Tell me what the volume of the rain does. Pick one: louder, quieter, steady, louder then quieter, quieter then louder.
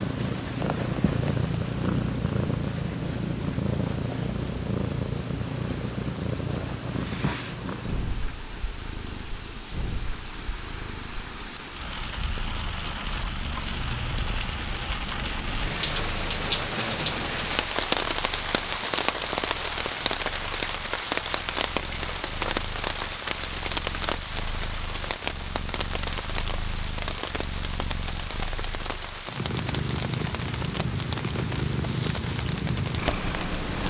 louder then quieter.